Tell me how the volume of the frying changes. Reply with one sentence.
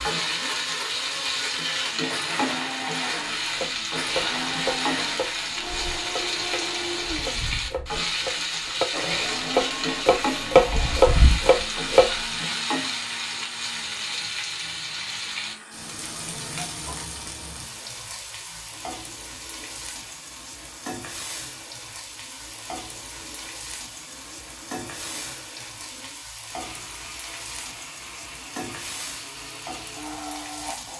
The loudness of the frying goes down.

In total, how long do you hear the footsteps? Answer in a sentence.
You can't hear the footsteps here.